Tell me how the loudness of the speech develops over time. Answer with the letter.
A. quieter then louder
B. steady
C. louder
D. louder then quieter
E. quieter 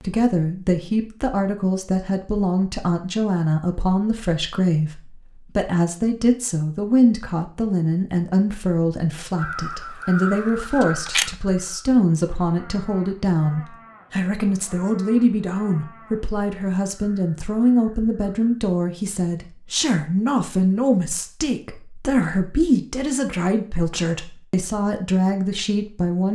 B.